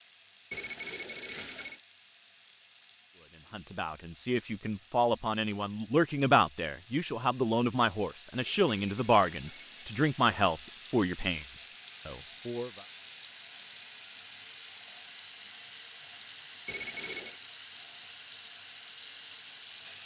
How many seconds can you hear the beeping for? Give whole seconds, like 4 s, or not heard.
4 s.